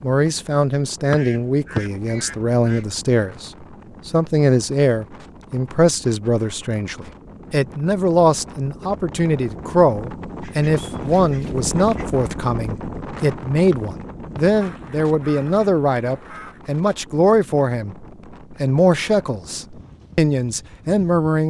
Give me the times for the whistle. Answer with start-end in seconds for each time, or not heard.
1.1-1.8, 13.7-14.4.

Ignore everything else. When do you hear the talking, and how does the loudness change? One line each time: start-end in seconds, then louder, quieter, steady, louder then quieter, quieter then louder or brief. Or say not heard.
0.0-21.4 steady.